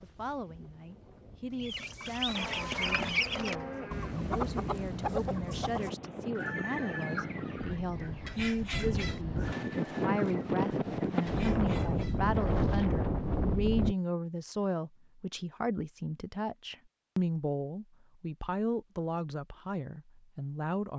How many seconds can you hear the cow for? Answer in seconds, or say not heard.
2 s.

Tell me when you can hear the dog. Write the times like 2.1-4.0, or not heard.
not heard.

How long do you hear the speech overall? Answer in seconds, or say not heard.
21 s.